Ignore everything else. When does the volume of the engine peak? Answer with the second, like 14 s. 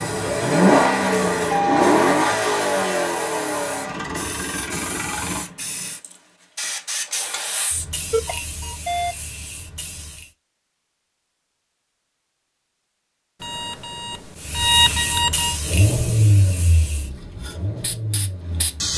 1 s.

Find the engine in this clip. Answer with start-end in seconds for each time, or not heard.
0.0-5.5, 15.6-18.9.